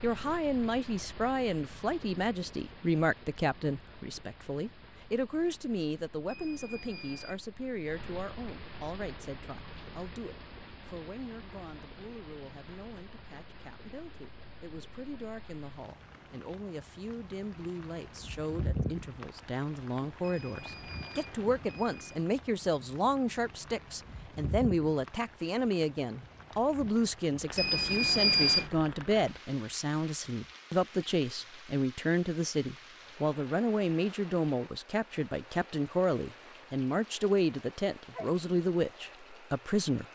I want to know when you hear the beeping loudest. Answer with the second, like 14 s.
28 s.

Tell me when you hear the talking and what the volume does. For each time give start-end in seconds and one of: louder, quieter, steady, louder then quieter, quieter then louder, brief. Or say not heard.
0.0-40.1 quieter then louder.